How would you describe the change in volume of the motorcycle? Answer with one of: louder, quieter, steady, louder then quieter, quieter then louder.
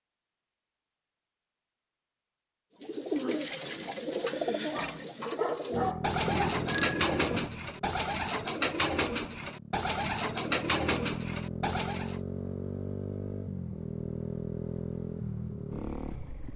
quieter then louder.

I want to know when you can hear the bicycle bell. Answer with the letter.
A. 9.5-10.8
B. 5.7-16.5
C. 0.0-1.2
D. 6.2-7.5
D.